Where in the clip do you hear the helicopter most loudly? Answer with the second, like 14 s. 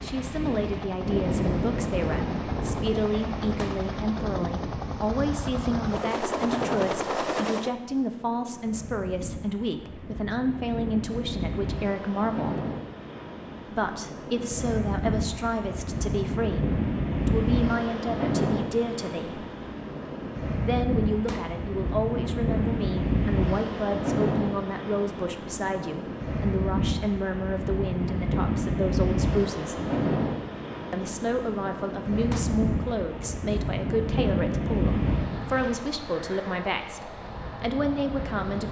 7 s.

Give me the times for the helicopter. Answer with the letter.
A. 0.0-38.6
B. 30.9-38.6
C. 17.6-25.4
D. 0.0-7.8
D.